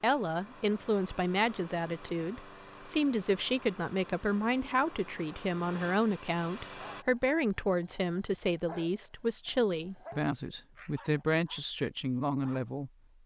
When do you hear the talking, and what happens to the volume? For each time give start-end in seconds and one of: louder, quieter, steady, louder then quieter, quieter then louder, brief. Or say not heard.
0.0-12.9 steady.